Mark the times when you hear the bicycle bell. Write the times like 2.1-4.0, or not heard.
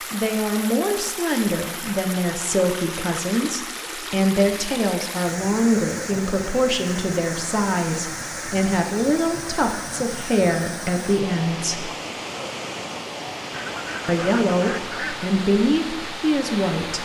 not heard.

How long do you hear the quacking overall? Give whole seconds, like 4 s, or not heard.
2 s.